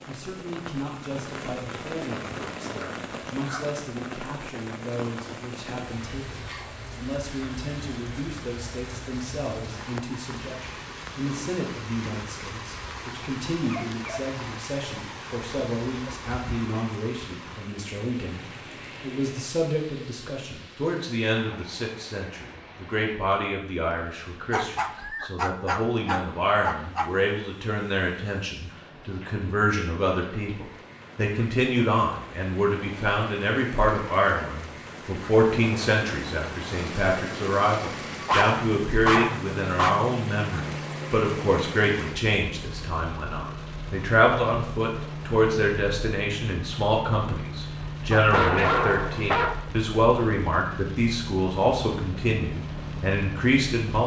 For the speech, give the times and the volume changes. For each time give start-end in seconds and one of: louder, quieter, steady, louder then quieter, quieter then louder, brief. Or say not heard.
0.1-54.0 louder.